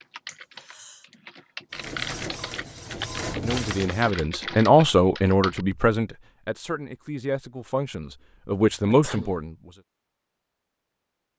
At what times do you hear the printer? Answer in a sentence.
The printer can be heard from 1.7 to 4.1 s.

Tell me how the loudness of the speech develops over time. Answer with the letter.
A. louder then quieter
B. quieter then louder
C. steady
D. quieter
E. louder
B.